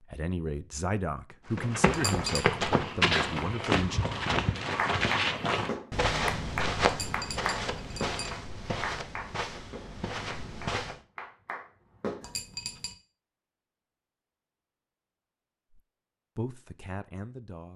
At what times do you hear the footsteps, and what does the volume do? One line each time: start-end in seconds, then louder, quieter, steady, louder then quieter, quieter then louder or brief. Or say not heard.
1.5-11.0 quieter.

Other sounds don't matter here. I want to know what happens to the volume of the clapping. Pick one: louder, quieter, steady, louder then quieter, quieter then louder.
quieter then louder.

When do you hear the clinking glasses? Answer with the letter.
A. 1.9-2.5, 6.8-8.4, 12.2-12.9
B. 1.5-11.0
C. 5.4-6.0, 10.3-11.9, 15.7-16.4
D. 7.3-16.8
A.